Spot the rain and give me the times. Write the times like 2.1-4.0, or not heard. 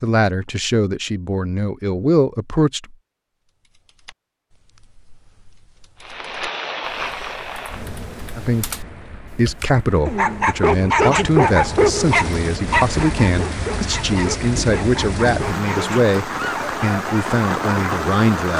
6.0-18.5.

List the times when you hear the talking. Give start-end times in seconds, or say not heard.
0.0-3.0, 8.3-18.5.